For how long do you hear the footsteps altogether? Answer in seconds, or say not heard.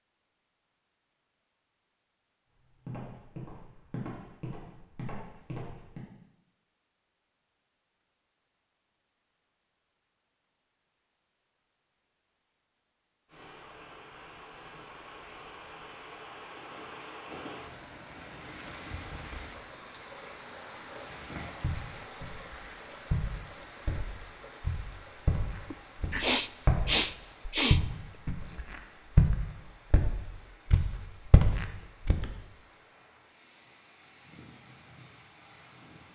14 s.